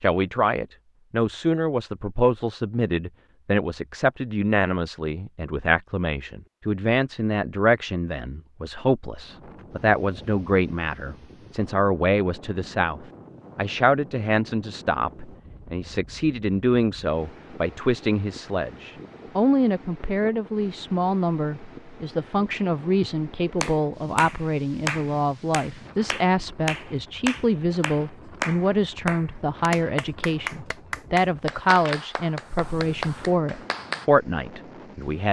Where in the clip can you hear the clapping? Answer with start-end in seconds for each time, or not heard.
23.6-34.0.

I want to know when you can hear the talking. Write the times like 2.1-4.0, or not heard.
0.0-35.2.